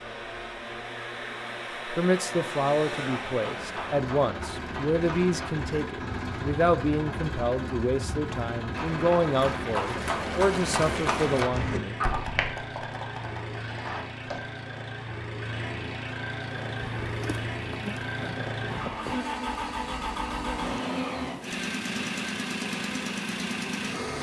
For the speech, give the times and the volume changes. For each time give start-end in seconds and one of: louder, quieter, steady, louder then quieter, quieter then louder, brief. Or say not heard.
1.9-11.8 steady.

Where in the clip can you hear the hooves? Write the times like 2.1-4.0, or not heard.
2.9-14.4.